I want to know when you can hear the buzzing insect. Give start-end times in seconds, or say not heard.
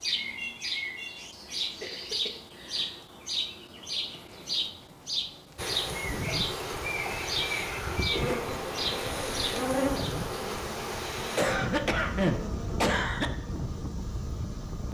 8.1-14.9.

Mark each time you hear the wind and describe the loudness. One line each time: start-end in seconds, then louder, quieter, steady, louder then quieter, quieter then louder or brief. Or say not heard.
5.5-14.9 steady.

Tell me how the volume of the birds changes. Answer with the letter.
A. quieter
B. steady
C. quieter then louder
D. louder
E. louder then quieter
B.